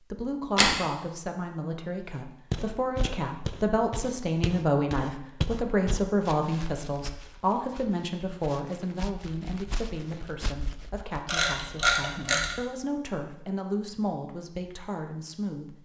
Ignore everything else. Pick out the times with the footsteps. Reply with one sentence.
The footsteps can be heard from 2.5 to 11.2 s.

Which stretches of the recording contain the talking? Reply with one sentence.
The talking can be heard from 0.1 to 15.8 s.